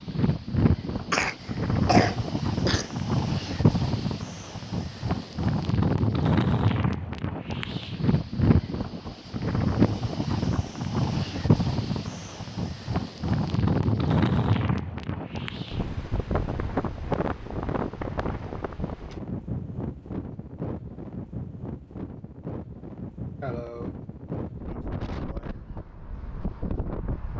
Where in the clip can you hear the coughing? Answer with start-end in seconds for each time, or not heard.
1.1-3.5, 23.4-23.9.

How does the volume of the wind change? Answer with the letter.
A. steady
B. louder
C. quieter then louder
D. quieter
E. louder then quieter
D.